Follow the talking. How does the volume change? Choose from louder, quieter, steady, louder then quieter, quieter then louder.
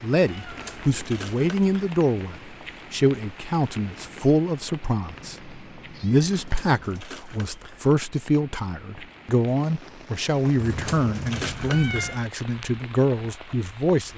steady.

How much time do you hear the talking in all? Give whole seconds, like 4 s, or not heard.
14 s.